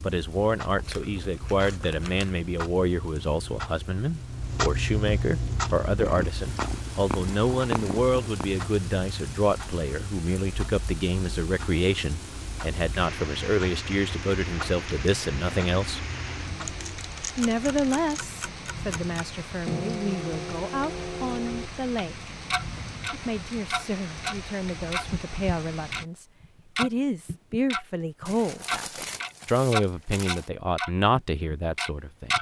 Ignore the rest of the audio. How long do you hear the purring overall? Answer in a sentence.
You can hear the purring for 3 seconds altogether.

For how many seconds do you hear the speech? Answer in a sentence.
You can hear the speech for 30 seconds altogether.